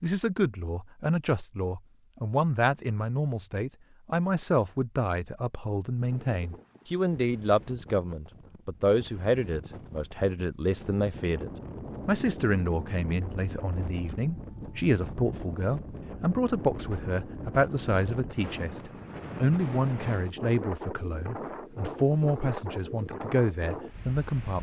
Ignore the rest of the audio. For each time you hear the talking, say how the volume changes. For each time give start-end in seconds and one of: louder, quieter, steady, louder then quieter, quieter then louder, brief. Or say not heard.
0.0-24.5 steady.